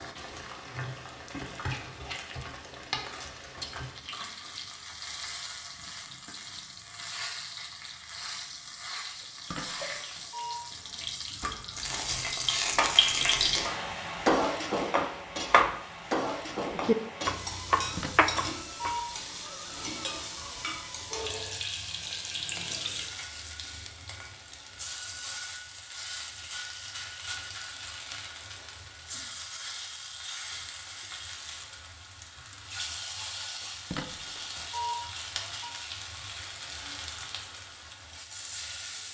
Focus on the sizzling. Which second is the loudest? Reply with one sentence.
The volume of the sizzling peaks at 13 seconds.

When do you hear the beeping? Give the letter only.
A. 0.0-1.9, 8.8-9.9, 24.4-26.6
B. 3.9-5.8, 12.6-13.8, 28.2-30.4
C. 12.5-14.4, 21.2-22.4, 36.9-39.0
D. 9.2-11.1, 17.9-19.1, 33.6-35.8
D.